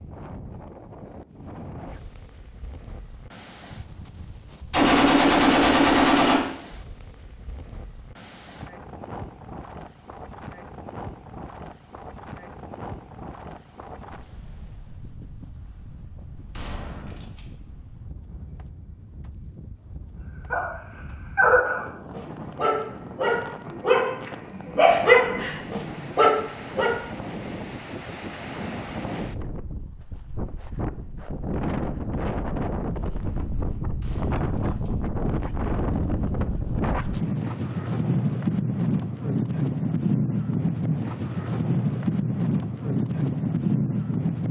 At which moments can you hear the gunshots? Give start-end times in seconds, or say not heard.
4.7-6.4, 16.6-17.4, 34.0-34.9.